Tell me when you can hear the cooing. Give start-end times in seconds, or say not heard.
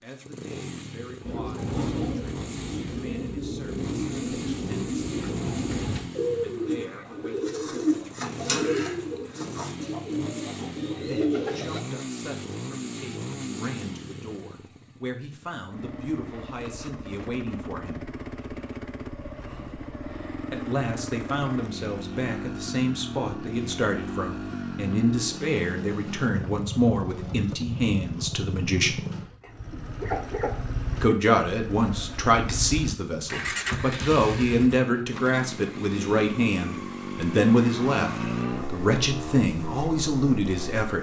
1.2-11.8.